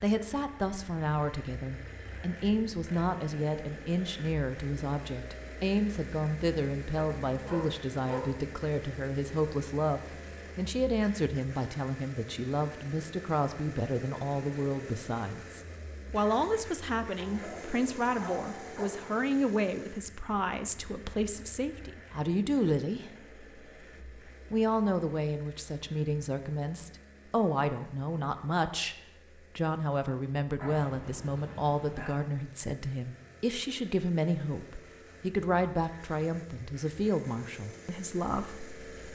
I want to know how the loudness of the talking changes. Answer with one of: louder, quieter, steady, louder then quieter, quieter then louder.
steady.